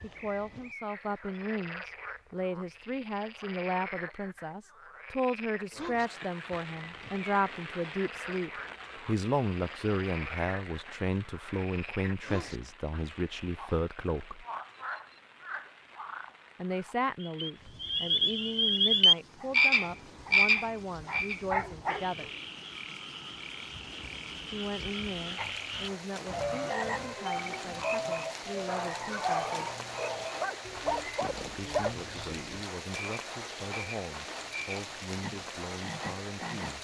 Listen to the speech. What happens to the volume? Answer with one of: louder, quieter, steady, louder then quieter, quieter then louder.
quieter.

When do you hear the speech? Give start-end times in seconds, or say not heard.
0.0-14.4, 16.6-22.3, 24.5-29.8, 31.6-36.7.